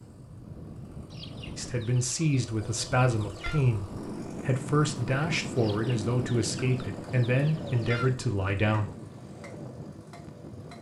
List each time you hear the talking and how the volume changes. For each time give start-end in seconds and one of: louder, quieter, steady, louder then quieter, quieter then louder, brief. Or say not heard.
1.6-8.9 steady.